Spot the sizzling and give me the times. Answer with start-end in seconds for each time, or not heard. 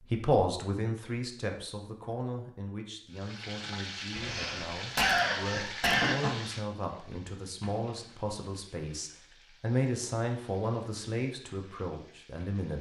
3.1-12.7.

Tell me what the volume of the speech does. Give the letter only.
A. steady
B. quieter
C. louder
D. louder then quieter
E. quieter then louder
E.